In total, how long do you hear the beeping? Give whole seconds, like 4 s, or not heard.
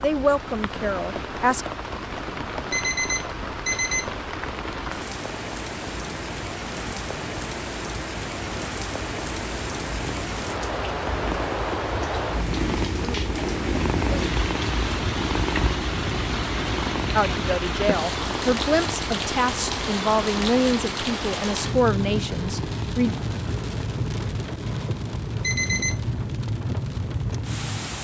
2 s.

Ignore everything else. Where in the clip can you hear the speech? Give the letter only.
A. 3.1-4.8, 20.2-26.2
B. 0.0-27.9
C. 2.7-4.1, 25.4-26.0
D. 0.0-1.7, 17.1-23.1
D.